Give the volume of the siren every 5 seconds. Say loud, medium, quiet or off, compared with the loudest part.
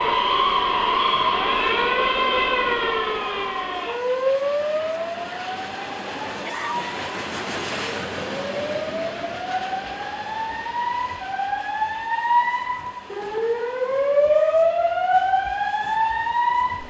loud, medium, loud, loud.